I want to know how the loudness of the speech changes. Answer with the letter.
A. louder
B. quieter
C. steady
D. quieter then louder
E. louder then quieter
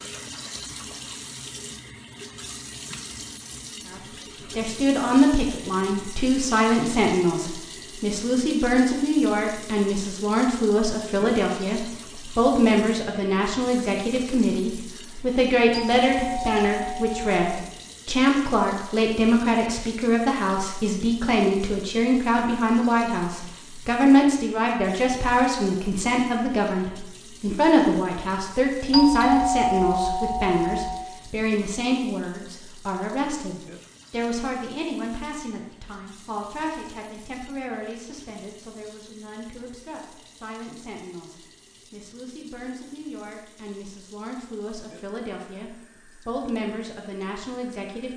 B.